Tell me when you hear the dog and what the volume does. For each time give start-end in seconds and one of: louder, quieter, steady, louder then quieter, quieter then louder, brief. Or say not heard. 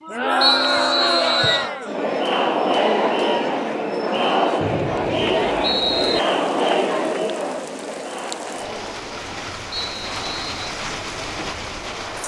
not heard.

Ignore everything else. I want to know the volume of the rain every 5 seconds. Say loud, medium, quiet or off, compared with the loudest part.
off, medium, loud.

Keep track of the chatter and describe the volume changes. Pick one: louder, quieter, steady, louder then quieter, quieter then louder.
quieter.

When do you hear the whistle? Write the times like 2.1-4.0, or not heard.
0.4-1.7, 4.6-6.2, 9.7-10.6.